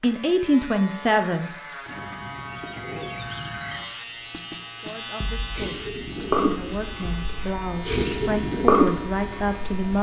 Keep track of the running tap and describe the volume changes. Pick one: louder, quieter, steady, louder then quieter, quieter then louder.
quieter then louder.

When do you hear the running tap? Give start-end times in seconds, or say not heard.
5.5-9.9.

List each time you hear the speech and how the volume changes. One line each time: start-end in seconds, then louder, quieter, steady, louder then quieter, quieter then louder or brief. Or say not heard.
0.0-1.5 brief
4.8-9.9 louder.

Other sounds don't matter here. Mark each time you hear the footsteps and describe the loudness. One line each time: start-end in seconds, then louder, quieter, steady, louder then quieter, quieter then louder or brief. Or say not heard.
not heard.